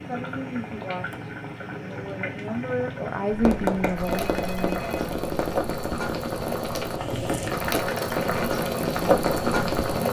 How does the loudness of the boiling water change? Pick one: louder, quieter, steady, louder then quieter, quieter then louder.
louder.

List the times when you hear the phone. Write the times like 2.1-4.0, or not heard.
4.0-5.0.